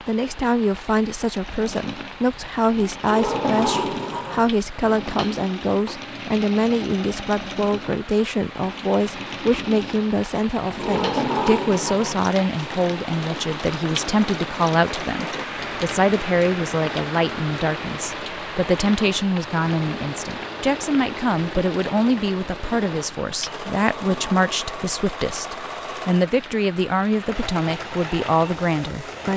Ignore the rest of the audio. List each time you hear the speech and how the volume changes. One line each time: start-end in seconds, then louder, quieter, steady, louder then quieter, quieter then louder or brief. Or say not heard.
0.1-29.3 steady.